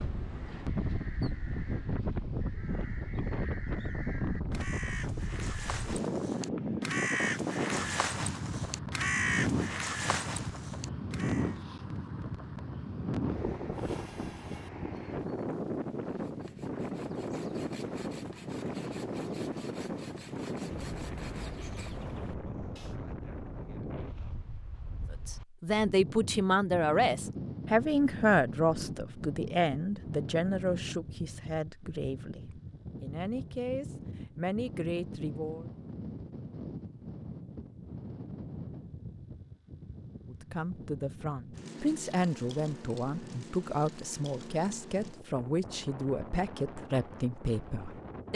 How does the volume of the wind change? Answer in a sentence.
The volume of the wind goes down.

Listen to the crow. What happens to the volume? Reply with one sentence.
The loudness of the crow goes up.